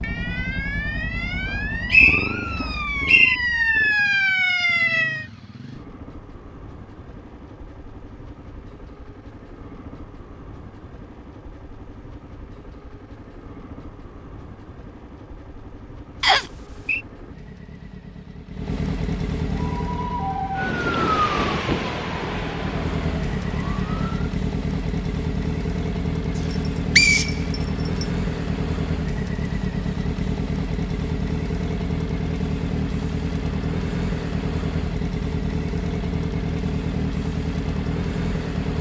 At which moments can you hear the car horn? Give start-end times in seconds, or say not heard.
not heard.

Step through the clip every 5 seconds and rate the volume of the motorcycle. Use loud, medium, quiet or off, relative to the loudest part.
medium, quiet, quiet, medium, loud, loud, loud, loud.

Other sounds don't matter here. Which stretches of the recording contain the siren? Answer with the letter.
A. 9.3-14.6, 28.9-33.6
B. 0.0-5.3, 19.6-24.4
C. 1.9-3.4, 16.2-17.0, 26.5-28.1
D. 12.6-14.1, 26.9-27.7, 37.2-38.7
B.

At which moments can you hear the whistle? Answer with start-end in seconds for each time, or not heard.
1.9-3.4, 16.2-17.0, 26.5-28.1.